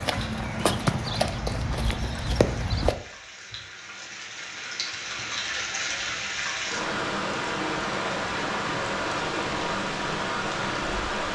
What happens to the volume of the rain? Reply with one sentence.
The loudness of the rain goes up.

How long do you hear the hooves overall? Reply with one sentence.
You can hear the hooves for 3 seconds altogether.